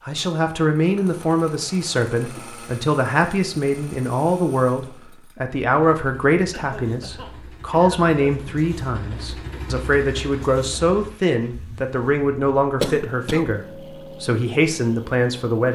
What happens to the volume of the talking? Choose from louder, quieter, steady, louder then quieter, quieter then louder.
steady.